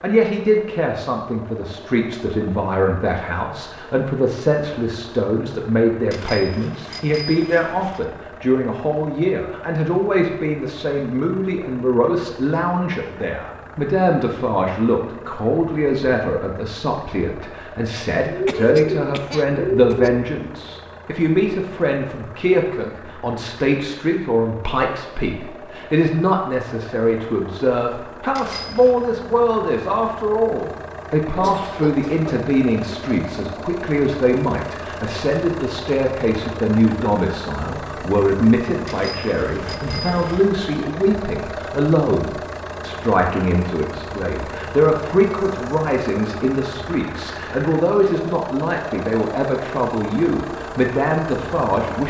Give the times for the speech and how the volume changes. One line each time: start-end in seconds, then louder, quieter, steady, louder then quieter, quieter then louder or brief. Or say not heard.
0.0-52.0 steady.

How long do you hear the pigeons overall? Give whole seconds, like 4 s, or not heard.
2 s.